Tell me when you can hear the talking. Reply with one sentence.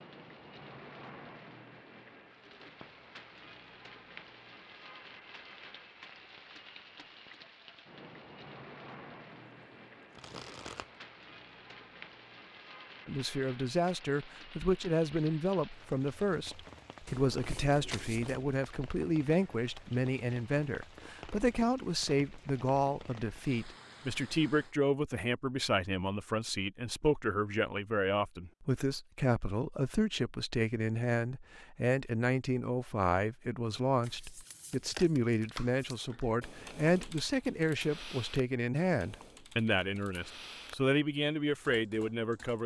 The talking can be heard from 13.1 to 42.6 s.